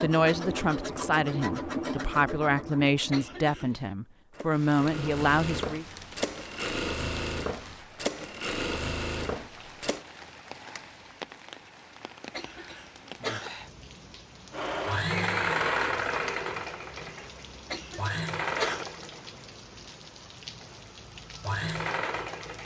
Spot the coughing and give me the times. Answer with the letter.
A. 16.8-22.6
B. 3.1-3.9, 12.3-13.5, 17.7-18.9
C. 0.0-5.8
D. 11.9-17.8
B.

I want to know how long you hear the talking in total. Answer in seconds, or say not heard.
6 s.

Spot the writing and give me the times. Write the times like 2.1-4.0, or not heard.
not heard.